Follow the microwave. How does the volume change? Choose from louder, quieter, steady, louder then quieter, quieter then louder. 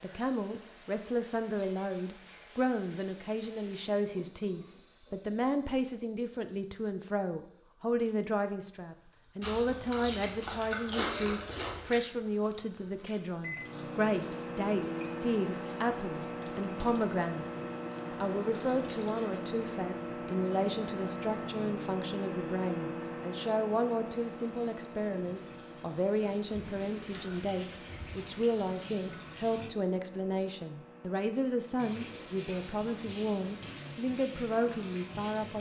quieter.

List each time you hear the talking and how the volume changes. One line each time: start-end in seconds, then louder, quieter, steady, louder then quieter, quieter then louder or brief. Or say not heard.
0.0-35.5 steady.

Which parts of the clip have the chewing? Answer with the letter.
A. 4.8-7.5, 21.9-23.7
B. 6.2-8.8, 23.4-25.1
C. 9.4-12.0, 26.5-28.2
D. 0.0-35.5
C.